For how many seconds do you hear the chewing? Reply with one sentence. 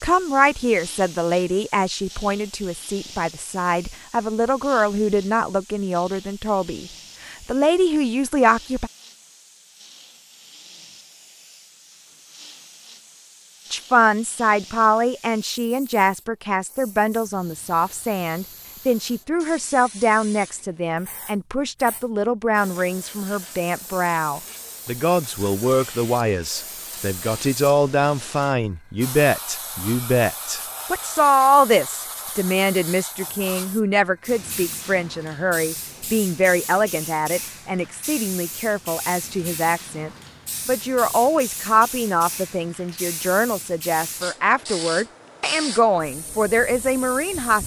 The chewing can't be heard in this clip.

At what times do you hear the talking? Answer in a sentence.
The talking can be heard from 0.0 to 8.9 s and from 13.7 to 47.6 s.